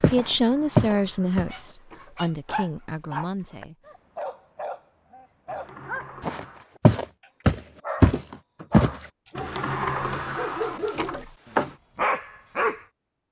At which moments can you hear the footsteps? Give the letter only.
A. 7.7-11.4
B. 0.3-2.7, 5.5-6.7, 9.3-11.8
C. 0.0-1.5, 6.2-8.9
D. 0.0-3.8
C.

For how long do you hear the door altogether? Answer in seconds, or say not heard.
6 s.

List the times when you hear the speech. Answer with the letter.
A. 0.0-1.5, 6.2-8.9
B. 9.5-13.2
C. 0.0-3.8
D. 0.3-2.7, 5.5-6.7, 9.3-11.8
C.